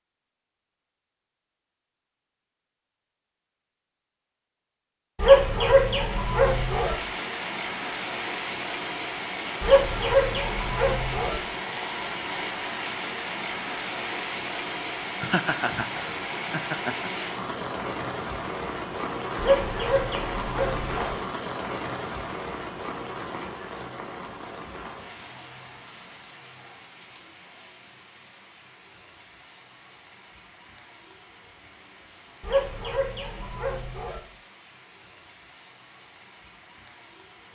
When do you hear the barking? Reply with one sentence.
The barking can be heard from 5.2 to 7.0 s, from 9.6 to 11.3 s, from 19.4 to 21.1 s and from 32.4 to 34.2 s.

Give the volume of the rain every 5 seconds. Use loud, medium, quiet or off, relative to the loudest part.
off, loud, loud, loud, loud, quiet, quiet, quiet.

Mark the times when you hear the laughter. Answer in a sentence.
You can hear the laughter from 15.2 to 17.2 s.